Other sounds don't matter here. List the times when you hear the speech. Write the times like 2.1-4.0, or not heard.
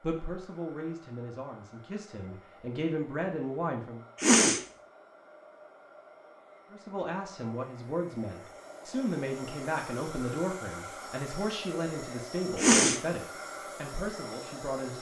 0.0-4.0, 6.7-14.9.